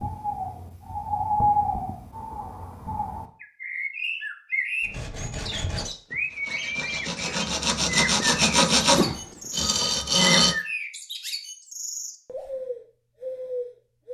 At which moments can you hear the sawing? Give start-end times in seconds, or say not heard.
4.8-10.6.